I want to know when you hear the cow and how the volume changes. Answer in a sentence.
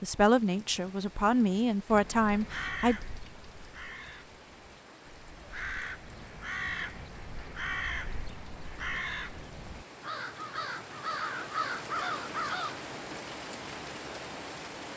You can't hear the cow here.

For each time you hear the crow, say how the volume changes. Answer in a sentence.
The crow can be heard from 1.9 to 12.8 s, getting louder.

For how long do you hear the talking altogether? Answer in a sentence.
The talking can be heard for 3 seconds in total.